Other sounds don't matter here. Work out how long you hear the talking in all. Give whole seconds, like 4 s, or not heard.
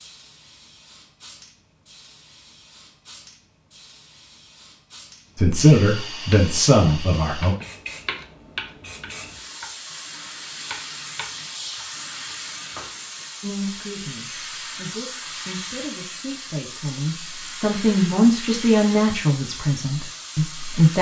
10 s.